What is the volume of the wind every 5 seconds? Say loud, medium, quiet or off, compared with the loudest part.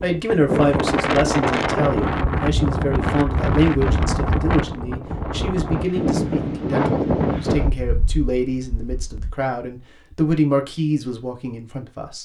loud, loud, off.